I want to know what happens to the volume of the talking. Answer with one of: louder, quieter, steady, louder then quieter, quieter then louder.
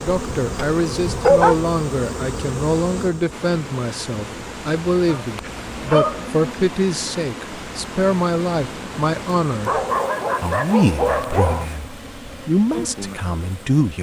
steady.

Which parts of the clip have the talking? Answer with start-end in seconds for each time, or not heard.
0.0-9.8, 10.4-13.9.